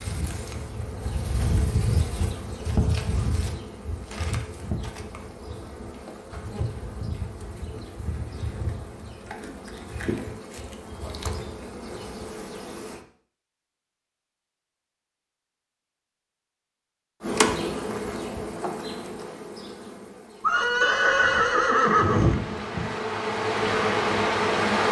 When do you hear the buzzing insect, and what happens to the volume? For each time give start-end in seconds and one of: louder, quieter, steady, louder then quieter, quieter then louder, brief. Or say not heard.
0.0-13.1 quieter
17.2-24.8 quieter then louder.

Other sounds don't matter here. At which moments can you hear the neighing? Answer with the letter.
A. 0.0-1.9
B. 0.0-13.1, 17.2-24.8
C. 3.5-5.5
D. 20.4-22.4
D.